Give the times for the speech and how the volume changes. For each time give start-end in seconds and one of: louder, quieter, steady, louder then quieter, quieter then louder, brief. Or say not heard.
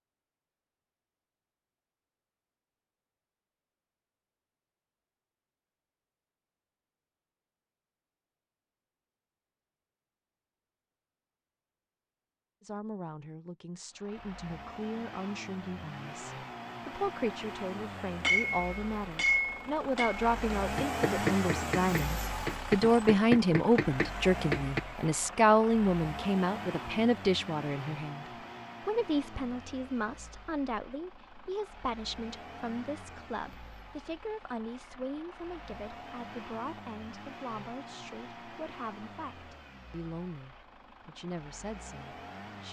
12.6-42.6 louder then quieter.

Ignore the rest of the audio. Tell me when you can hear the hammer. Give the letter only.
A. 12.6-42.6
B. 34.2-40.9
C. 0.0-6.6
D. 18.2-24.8
D.